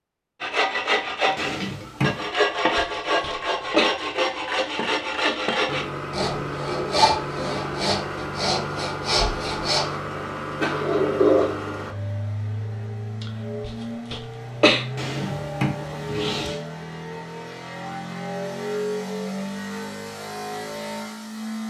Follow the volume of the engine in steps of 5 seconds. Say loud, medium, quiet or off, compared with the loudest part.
off, loud, loud, loud, loud.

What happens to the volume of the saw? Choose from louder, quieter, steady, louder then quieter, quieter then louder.
steady.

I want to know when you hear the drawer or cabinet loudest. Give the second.
11 s.